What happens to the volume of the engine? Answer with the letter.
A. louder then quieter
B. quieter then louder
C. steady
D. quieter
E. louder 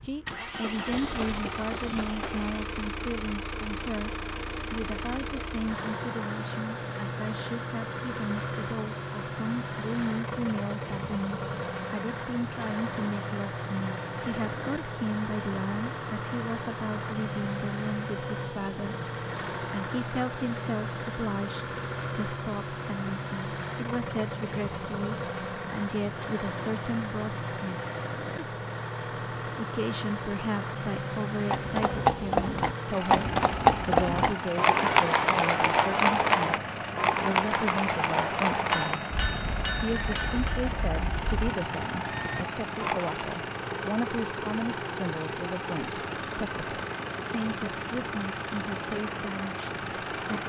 C.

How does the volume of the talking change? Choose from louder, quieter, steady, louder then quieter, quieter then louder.
steady.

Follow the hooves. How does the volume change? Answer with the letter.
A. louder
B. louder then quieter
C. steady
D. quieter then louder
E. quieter
E.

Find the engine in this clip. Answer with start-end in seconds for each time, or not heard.
0.0-50.4.